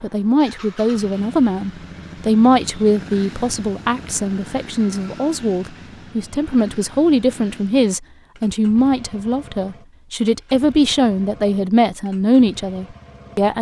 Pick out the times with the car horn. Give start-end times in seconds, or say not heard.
not heard.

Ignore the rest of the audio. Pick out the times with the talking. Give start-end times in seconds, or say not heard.
0.0-13.5.